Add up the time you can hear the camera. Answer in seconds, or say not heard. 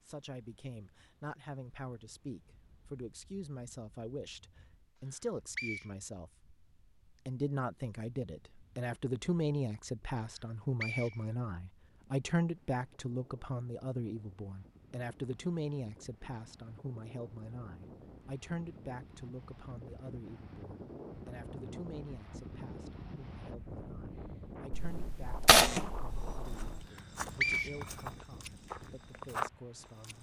2 s.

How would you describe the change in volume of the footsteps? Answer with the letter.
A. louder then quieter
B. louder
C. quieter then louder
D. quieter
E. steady
B.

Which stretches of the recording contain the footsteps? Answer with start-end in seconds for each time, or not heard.
25.6-30.1.